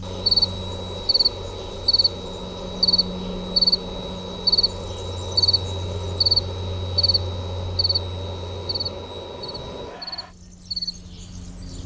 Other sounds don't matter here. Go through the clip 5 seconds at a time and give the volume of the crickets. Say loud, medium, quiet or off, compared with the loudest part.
loud, loud, medium.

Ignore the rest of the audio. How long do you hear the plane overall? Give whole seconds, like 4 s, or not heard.
10 s.